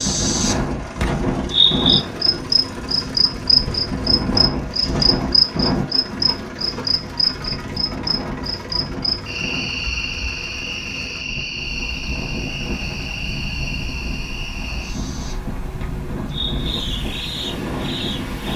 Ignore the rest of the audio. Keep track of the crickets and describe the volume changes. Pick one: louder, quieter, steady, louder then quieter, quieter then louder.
quieter.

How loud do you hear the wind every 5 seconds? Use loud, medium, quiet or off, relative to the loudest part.
loud, loud, medium, loud.